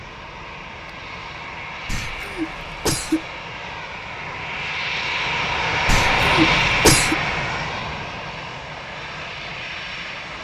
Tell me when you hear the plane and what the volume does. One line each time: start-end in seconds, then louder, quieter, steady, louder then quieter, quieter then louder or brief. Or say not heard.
0.0-10.3 louder then quieter.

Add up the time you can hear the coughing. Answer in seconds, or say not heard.
3 s.